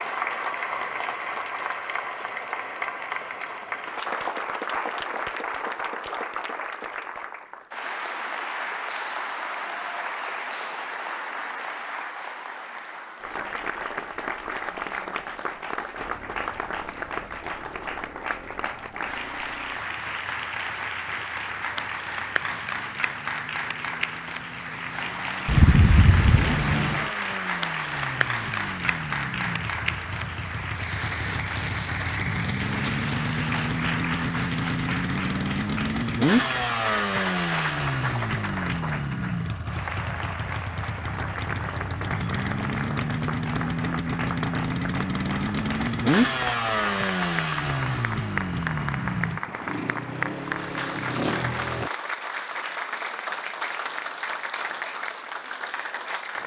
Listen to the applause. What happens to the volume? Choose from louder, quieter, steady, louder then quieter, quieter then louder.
steady.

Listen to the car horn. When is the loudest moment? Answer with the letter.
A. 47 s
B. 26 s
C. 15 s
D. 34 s
B.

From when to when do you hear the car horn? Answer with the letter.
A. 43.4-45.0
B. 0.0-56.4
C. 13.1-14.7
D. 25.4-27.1
D.